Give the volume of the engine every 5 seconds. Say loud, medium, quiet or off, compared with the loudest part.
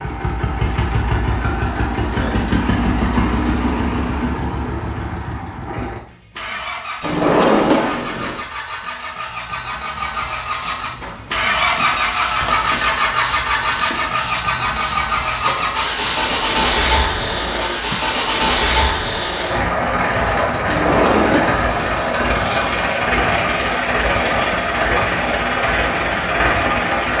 loud, medium, loud, loud, loud, loud.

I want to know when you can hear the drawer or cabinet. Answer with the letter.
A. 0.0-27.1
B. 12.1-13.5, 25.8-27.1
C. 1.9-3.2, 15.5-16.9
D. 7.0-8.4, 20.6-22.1
D.